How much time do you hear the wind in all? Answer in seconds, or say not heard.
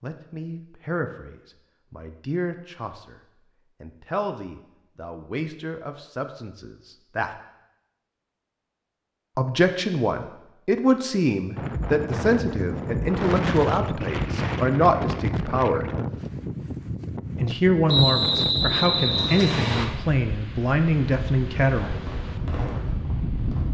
12 s.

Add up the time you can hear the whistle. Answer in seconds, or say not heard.
2 s.